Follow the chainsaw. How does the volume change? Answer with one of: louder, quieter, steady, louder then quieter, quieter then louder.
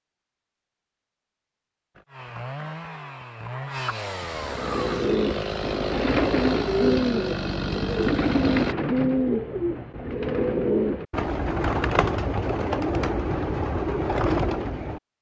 louder.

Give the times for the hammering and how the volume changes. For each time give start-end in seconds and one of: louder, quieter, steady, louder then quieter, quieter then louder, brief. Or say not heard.
not heard.